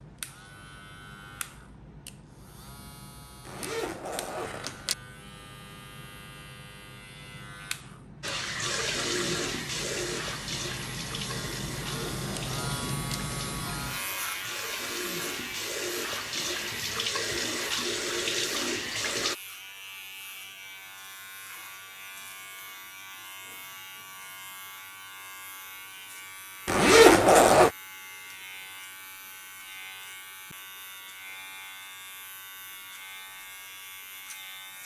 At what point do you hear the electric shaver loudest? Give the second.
13 s.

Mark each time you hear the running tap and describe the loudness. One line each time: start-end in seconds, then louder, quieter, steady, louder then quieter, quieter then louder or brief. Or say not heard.
8.2-19.4 quieter then louder.